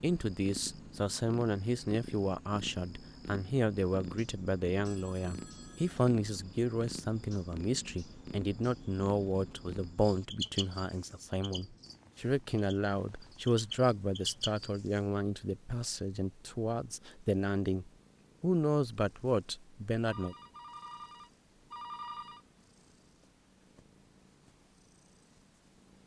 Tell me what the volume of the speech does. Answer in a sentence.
The loudness of the speech stays about the same.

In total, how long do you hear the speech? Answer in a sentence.
The speech can be heard for 20 seconds in total.